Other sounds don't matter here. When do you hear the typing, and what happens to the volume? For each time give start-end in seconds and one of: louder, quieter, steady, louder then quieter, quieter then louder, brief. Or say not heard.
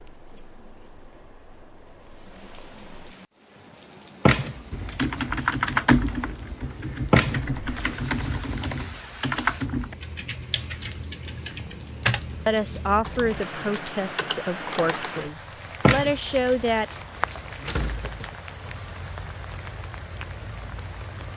4.7-15.3 quieter.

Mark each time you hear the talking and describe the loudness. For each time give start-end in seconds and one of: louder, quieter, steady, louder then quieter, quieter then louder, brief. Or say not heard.
12.4-16.9 quieter then louder.